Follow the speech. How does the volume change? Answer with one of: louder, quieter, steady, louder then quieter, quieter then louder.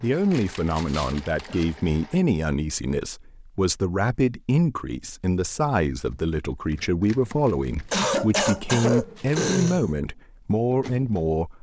steady.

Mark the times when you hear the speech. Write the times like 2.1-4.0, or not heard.
0.0-11.5.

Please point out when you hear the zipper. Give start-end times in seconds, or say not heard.
not heard.